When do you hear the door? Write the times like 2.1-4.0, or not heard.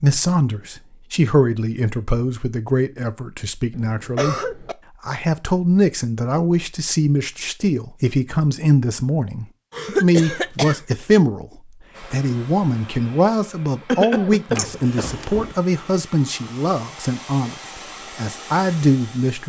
14.6-15.6.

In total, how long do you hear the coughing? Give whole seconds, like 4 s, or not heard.
4 s.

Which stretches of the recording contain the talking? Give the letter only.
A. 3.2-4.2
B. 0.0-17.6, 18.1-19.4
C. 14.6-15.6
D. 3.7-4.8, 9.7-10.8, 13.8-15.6
B.